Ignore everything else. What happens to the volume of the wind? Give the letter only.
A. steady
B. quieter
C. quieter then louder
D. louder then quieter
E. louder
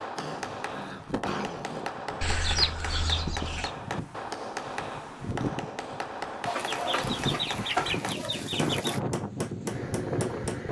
E.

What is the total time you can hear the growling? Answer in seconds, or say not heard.
2 s.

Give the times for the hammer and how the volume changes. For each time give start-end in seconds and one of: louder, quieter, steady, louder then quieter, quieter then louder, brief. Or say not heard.
0.0-10.6 steady.